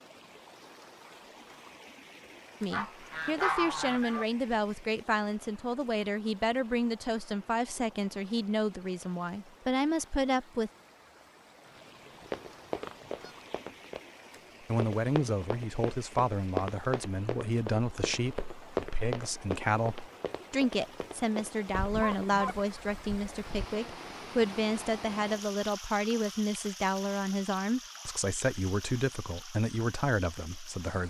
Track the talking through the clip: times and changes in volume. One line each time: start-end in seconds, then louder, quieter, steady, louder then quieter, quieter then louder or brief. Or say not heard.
2.6-10.7 steady
14.7-31.0 steady.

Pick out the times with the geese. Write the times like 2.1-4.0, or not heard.
2.7-4.2, 11.7-13.6, 21.7-23.6.